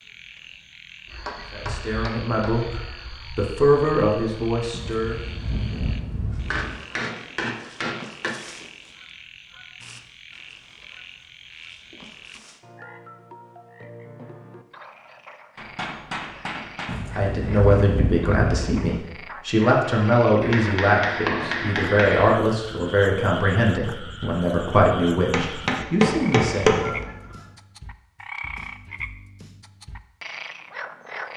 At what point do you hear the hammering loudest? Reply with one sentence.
The volume of the hammering peaks at 27 seconds.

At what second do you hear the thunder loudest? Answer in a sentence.
The loudest moment of the thunder is at 18 seconds.